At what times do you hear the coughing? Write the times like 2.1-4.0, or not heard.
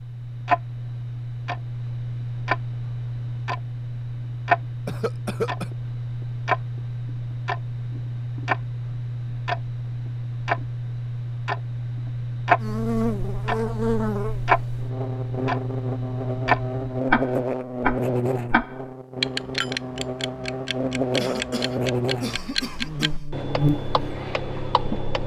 4.8-5.7, 21.1-23.2.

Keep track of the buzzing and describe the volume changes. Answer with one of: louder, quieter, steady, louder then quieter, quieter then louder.
steady.